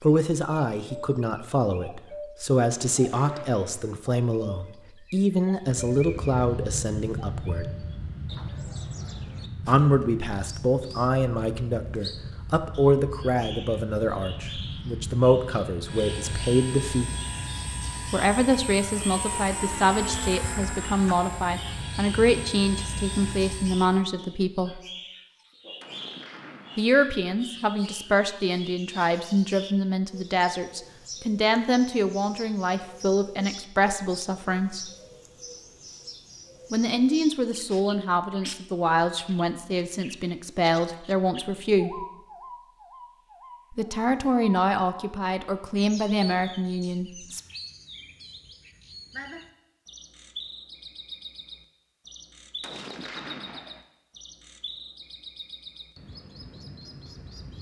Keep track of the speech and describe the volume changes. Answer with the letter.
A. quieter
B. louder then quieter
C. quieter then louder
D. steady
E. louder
D.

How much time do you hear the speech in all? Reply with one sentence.
You can hear the speech for 39 seconds altogether.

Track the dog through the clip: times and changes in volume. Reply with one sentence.
You can't hear the dog here.